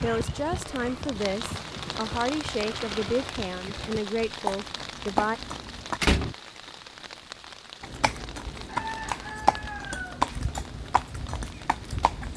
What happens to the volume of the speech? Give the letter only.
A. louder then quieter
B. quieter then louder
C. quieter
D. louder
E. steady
E.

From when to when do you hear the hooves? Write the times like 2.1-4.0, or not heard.
0.0-6.0, 7.8-12.3.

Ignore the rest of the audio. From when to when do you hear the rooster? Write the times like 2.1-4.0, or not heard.
8.7-10.6.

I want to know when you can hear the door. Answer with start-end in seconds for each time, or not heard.
5.5-6.3.